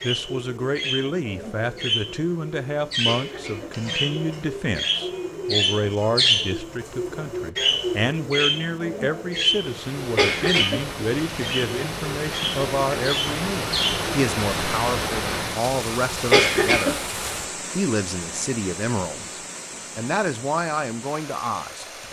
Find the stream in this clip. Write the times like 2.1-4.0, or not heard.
9.4-22.0.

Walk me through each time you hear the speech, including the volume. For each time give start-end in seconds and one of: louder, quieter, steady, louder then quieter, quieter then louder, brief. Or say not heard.
0.0-22.0 steady.